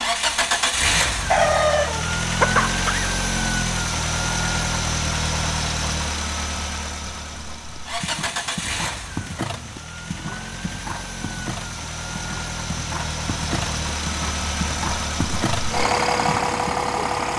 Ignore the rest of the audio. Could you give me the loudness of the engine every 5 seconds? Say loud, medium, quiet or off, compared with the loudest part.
loud, medium, medium, loud.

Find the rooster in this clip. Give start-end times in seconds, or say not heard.
1.3-3.1.